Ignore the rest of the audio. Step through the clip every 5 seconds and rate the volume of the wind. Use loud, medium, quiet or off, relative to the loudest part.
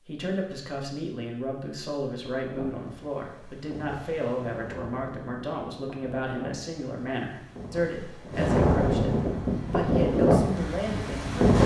quiet, medium, loud.